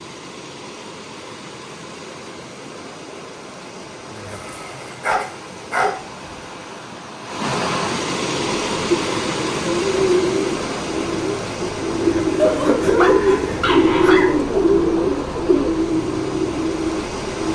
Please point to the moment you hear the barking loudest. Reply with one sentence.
The volume of the barking peaks at 13 seconds.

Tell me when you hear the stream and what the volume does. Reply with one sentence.
The stream can be heard from 0.0 to 17.5 s, getting louder then quieter.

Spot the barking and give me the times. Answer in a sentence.
The barking can be heard from 4.3 to 6.0 s and from 12.3 to 14.3 s.